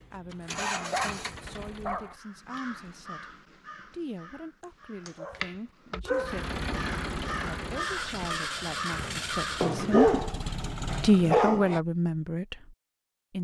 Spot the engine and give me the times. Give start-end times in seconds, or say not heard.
0.0-2.2, 6.2-11.4.